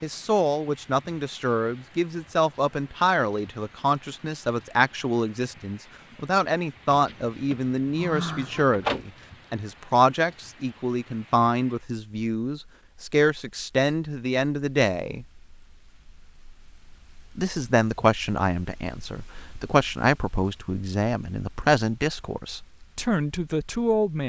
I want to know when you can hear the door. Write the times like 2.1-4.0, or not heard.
6.9-9.1.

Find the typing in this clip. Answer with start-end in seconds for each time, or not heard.
not heard.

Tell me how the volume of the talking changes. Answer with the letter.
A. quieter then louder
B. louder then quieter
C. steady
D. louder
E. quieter
C.